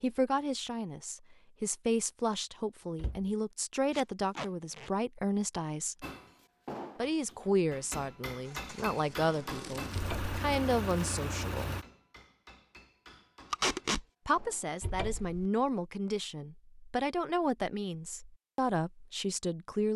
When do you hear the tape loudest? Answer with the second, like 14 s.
14 s.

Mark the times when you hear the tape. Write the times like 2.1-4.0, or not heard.
3.9-4.9, 8.9-10.1, 13.5-14.1.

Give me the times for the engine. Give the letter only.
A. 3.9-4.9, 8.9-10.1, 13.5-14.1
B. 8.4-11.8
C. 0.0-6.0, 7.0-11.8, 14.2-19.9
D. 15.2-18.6
B.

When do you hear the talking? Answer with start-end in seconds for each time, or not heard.
0.0-6.0, 7.0-11.8, 14.2-19.9.